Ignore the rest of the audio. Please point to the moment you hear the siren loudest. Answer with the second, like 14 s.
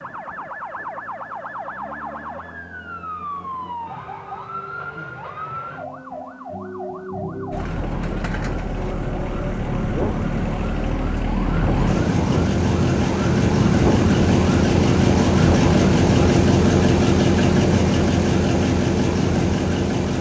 14 s.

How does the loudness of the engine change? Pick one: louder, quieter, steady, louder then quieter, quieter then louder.
louder.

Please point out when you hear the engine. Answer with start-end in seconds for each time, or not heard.
7.5-20.1.